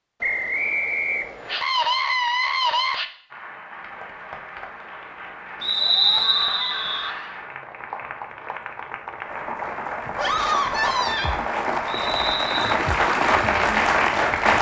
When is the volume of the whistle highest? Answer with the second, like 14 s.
6 s.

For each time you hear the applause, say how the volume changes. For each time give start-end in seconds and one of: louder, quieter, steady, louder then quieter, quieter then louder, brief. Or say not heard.
3.3-14.5 louder.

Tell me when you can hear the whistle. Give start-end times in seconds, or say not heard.
0.2-1.6, 5.6-7.1, 11.8-12.8.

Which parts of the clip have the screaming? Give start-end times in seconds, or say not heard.
1.5-3.0, 5.8-7.4, 10.2-11.3.